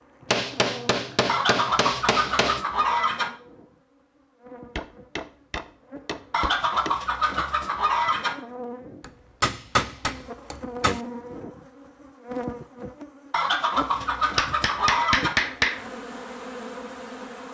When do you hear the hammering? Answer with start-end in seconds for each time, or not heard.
0.3-2.6, 4.8-7.0, 9.0-11.0, 14.3-15.8.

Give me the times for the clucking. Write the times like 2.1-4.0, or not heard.
1.2-3.3, 6.3-8.3, 13.3-15.3.